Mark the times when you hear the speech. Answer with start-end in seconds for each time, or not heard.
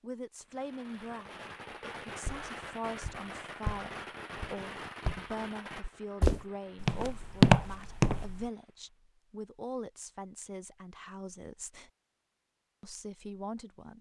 0.0-11.9, 12.8-13.9.